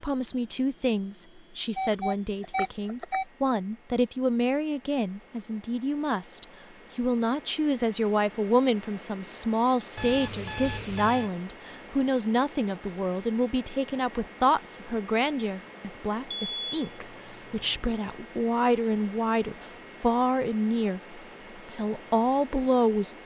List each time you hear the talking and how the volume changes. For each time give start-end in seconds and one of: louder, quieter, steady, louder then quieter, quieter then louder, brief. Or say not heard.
0.0-23.2 steady.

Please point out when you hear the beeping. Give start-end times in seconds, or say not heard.
1.8-3.2, 9.9-11.3, 16.3-17.9.